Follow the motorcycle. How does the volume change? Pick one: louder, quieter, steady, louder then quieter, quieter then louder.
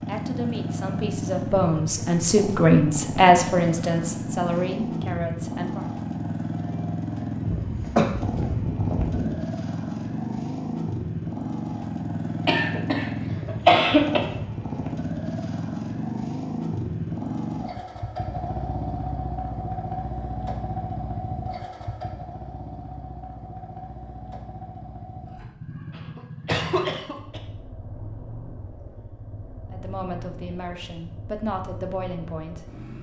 quieter.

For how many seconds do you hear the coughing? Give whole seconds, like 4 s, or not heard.
5 s.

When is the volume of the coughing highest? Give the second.
14 s.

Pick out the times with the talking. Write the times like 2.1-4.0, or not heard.
0.0-5.9, 29.7-32.7.